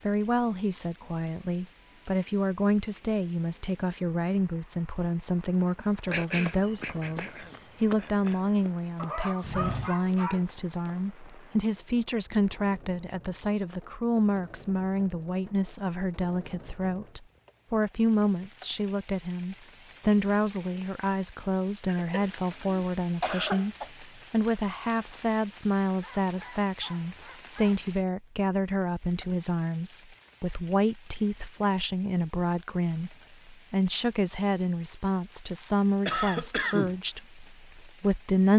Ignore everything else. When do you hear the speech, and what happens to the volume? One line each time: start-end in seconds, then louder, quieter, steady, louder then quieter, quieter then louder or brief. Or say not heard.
0.1-38.5 steady.